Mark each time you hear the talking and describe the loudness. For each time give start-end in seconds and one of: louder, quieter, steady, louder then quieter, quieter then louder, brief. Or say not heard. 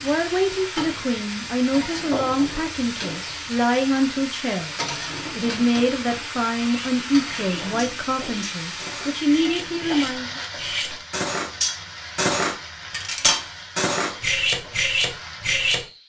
0.0-10.4 steady.